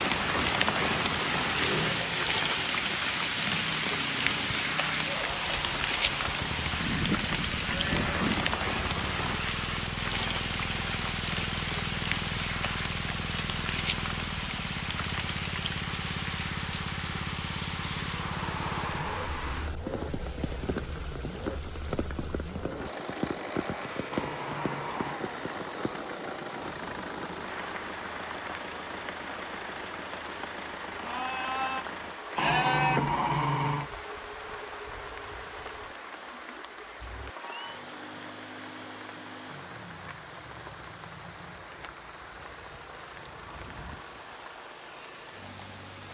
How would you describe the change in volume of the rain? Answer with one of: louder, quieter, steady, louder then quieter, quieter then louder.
quieter.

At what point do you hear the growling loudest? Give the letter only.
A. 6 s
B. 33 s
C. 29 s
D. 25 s
B.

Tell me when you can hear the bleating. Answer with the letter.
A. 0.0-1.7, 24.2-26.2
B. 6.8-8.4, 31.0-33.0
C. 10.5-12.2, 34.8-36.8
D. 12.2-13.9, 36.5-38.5
B.